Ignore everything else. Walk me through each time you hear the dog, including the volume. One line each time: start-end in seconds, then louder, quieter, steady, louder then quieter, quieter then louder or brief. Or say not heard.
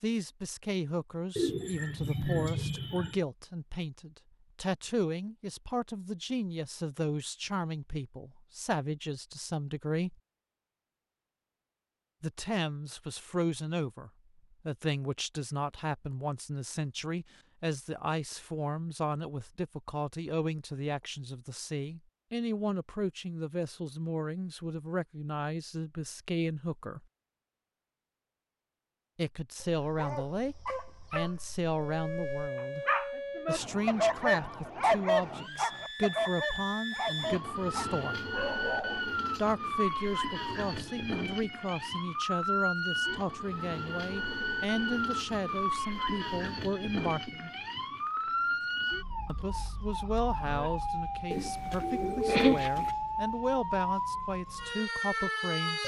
29.6-39.0 louder then quieter.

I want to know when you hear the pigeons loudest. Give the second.
52 s.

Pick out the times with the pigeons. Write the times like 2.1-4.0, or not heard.
1.4-3.2, 51.3-52.9.